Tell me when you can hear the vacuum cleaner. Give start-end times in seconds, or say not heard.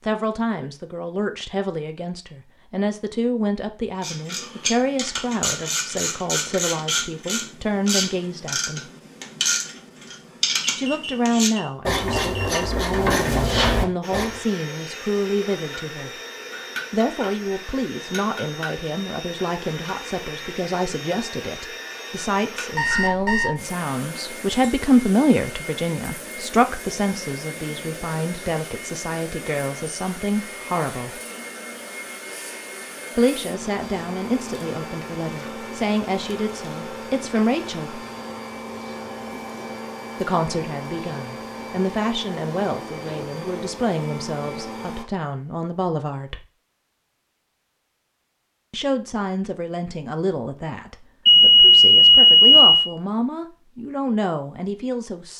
14.0-45.0.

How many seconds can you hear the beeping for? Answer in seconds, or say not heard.
4 s.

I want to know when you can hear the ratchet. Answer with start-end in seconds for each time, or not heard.
4.0-14.4.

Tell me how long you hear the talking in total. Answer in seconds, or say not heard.
46 s.